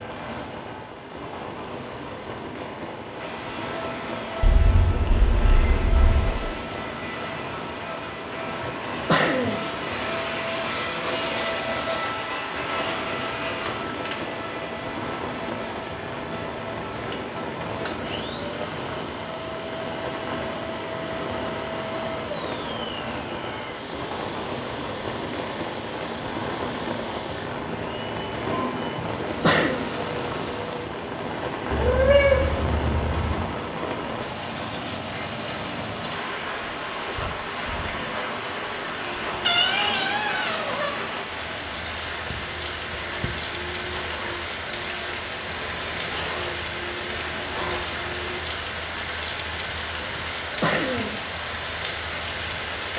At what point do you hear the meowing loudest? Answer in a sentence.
The loudest moment of the meowing is at 32 seconds.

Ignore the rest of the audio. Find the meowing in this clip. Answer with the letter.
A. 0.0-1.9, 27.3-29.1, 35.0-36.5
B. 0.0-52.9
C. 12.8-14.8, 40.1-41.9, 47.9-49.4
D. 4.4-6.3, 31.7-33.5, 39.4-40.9
D.